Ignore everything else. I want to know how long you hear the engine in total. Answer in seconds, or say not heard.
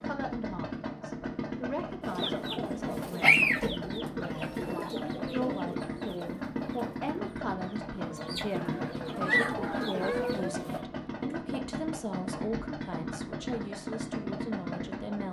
15 s.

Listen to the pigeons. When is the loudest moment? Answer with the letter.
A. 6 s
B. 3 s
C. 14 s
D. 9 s
B.